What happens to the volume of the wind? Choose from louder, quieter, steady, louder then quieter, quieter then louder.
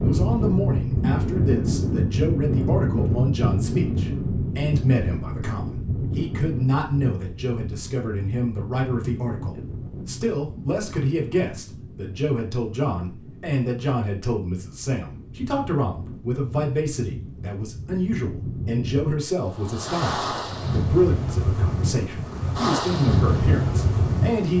quieter then louder.